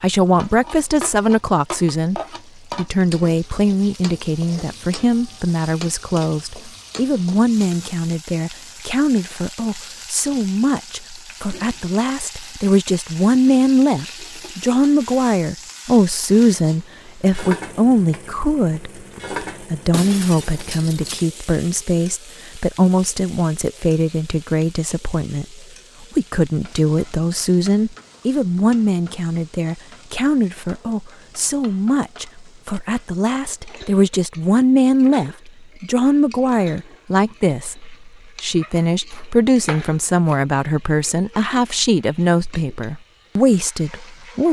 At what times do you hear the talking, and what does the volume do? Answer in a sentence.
You can hear the talking from 0.0 to 44.4 s, at a steady volume.